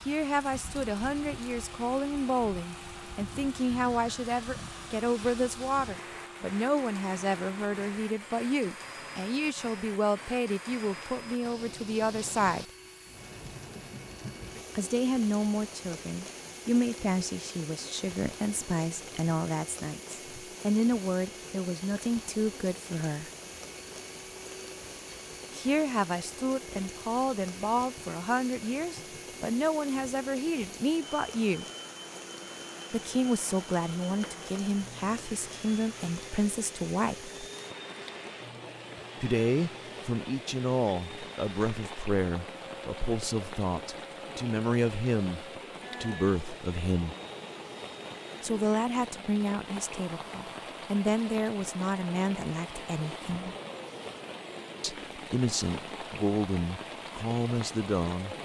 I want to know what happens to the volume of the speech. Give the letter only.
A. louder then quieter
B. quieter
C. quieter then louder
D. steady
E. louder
D.